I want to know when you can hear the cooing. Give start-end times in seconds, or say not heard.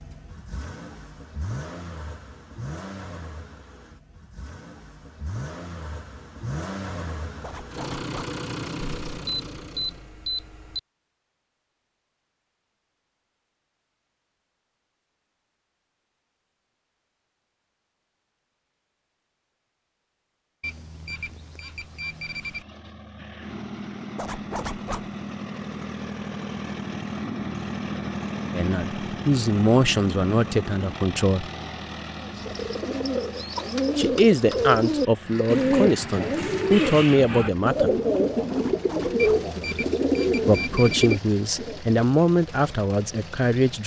32.2-41.8.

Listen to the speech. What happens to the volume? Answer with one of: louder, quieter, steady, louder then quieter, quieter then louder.
steady.